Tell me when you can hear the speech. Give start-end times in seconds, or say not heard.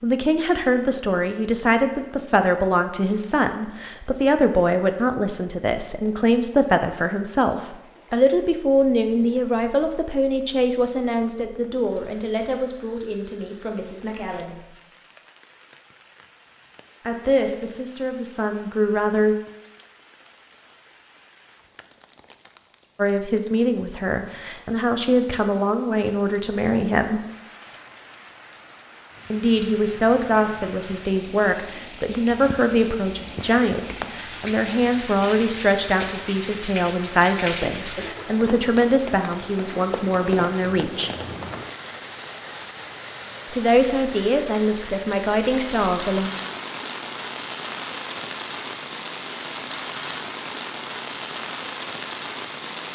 0.0-14.7, 17.0-19.4, 22.9-27.2, 29.3-41.1, 43.5-46.3.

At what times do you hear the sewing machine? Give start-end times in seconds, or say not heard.
not heard.